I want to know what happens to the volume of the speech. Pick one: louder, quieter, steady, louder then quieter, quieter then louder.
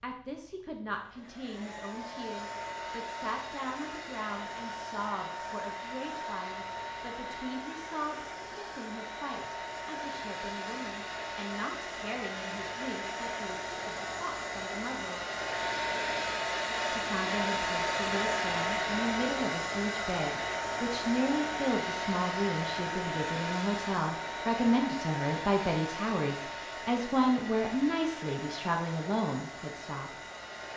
louder.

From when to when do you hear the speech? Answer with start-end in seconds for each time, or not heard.
0.0-15.2, 16.9-30.1.